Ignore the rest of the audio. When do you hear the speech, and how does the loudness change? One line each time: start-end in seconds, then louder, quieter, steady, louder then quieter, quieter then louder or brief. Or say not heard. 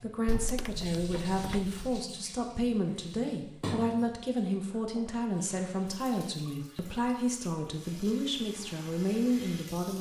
0.0-9.9 steady.